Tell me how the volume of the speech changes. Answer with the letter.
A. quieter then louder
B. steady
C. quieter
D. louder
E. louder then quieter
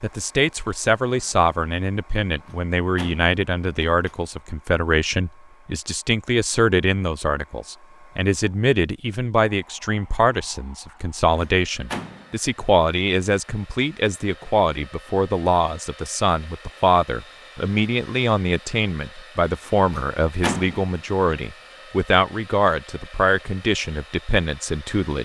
B.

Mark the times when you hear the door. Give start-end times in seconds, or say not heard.
2.4-4.2, 11.3-12.3, 19.9-20.9.